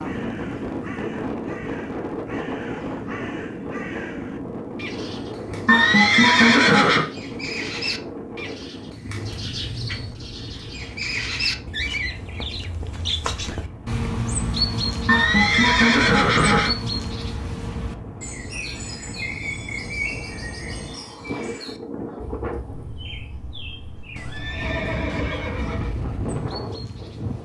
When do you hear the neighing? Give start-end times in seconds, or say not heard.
5.7-7.0, 15.1-16.8, 24.1-25.9.